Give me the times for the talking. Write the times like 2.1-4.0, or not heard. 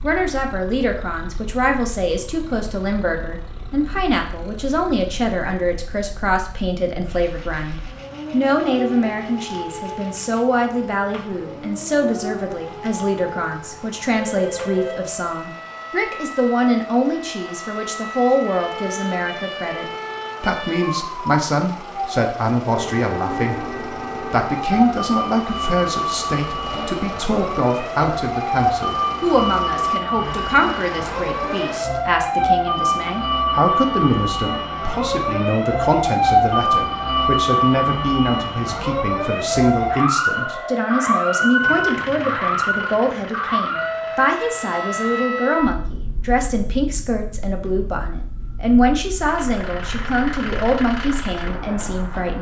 0.0-52.3.